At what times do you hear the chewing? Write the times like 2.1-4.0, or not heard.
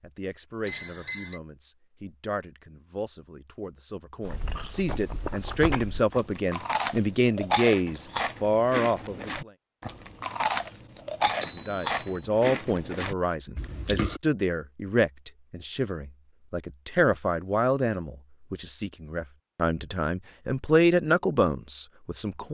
4.2-14.2.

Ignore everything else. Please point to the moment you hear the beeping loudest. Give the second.
12 s.